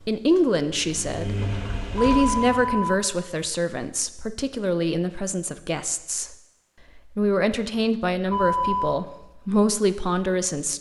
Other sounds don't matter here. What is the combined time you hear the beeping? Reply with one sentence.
You can hear the beeping for 2 seconds altogether.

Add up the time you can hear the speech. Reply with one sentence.
The speech can be heard for 10 seconds in total.